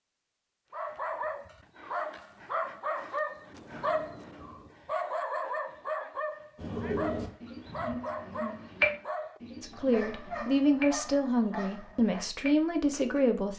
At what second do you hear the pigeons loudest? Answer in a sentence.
The volume of the pigeons peaks at 9 seconds.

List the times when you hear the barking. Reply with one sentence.
The barking can be heard from 0.7 to 12.3 s.